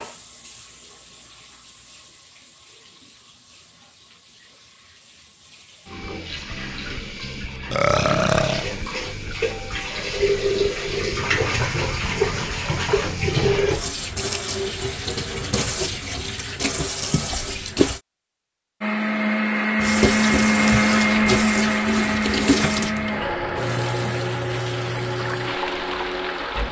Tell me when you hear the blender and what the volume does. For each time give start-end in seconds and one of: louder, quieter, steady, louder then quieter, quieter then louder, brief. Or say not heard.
18.8-26.6 quieter.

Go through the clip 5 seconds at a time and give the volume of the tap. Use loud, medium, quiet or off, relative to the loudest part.
quiet, medium, loud, loud, loud, medium.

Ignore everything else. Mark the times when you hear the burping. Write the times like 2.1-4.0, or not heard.
7.7-8.7.